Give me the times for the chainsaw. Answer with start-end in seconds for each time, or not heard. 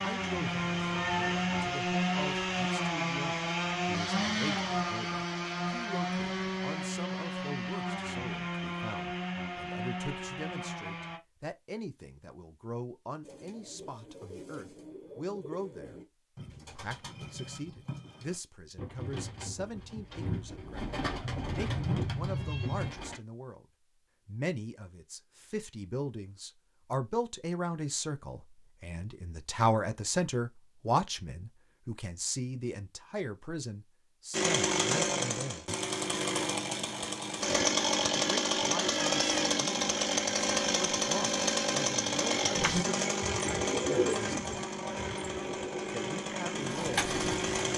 0.0-11.2, 34.3-47.7.